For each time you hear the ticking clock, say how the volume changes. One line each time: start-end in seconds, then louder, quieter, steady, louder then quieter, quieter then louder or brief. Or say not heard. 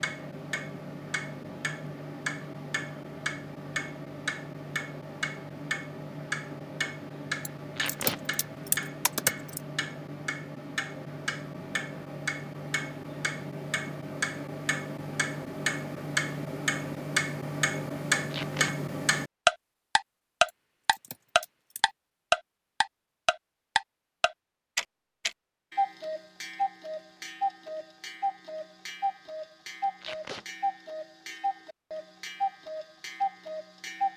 0.0-34.1 louder then quieter.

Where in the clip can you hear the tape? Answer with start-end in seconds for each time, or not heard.
7.8-8.2, 18.3-18.8, 30.0-30.4.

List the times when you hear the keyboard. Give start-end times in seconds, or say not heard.
7.5-9.6, 20.4-21.8.